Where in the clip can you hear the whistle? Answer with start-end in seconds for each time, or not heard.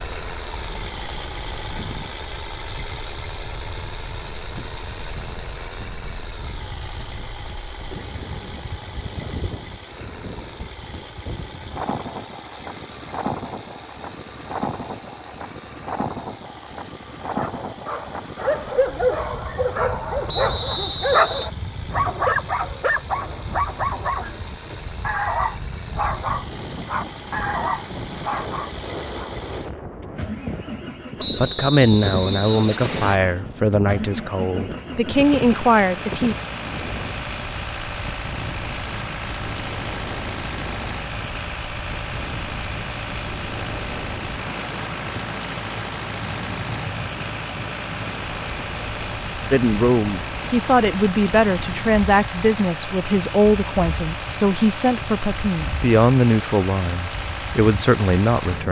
20.2-21.5, 31.1-33.2.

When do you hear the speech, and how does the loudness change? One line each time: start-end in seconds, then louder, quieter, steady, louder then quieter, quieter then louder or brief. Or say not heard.
31.4-36.4 quieter then louder
49.5-58.6 steady.